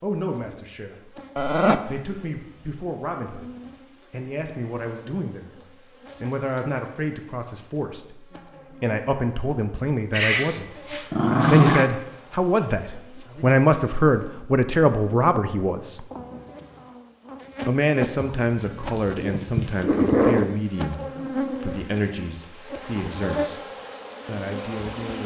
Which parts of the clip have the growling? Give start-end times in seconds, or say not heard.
1.4-2.0, 10.1-11.9, 18.2-20.4.